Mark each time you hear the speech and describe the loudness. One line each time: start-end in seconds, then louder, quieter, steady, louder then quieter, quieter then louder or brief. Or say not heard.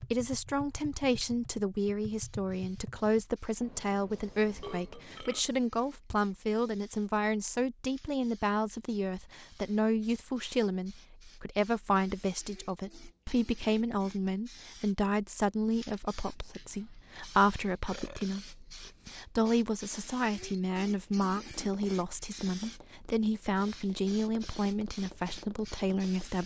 0.0-26.4 steady.